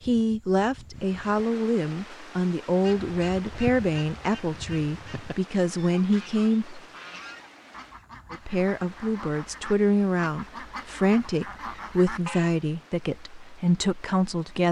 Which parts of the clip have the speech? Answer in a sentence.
You can hear the speech from 0.0 to 6.8 s and from 8.3 to 14.6 s.